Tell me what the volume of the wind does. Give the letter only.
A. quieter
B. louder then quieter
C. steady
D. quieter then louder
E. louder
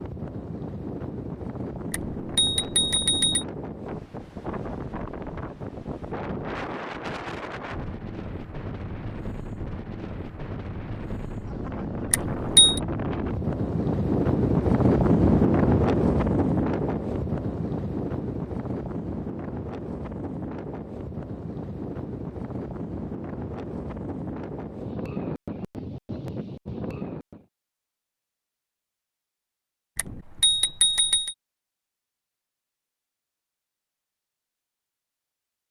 B.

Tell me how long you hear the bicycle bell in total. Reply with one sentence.
You can hear the bicycle bell for 4 seconds altogether.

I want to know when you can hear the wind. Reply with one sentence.
You can hear the wind from 0.0 to 27.4 s.